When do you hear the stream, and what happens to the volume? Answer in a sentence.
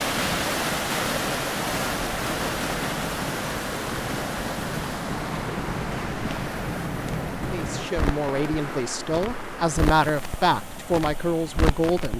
The stream can be heard from 0.0 to 12.1 s, getting quieter.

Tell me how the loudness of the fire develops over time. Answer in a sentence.
The volume of the fire goes up.